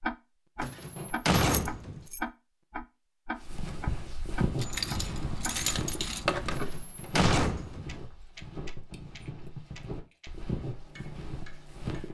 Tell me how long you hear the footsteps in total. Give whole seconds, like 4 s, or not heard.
9 s.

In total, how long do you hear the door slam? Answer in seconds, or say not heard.
3 s.